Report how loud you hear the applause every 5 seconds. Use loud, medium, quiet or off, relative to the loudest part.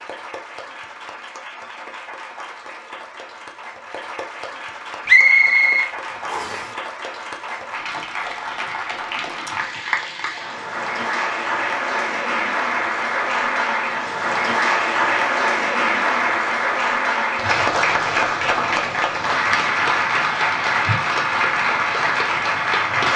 quiet, medium, loud, loud, loud.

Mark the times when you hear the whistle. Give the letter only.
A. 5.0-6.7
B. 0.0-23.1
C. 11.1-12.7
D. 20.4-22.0
A.